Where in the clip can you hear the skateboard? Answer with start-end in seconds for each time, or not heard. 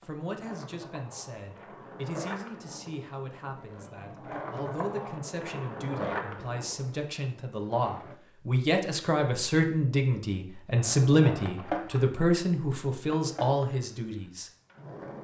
0.0-8.2, 10.8-15.2.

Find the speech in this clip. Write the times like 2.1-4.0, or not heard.
0.0-14.5.